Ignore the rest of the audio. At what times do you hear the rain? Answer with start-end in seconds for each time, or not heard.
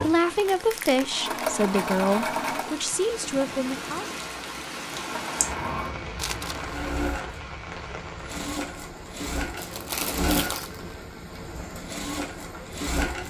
0.0-13.2.